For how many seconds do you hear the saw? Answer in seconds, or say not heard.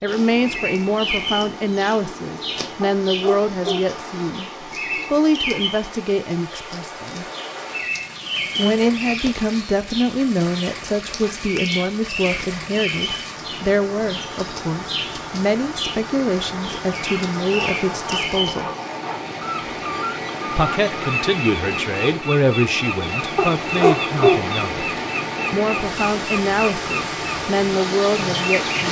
2 s.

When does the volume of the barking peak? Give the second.
24 s.